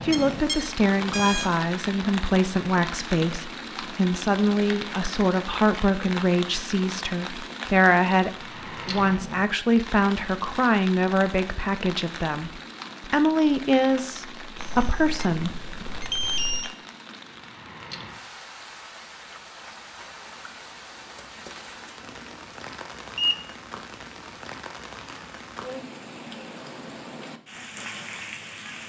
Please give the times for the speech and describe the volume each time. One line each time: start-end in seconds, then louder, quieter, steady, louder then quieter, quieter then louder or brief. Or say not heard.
0.0-15.5 steady.